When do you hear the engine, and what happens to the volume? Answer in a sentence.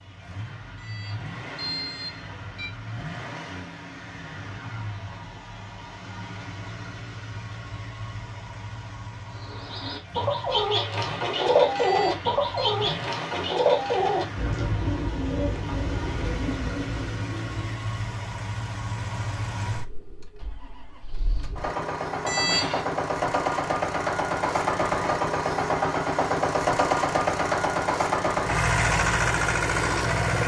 You can hear the engine from 0.0 to 30.4 s, getting louder.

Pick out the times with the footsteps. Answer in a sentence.
The footsteps can't be heard in this clip.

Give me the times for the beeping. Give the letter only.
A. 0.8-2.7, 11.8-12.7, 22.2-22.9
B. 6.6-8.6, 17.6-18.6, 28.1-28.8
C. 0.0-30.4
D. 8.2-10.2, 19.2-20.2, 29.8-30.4
A.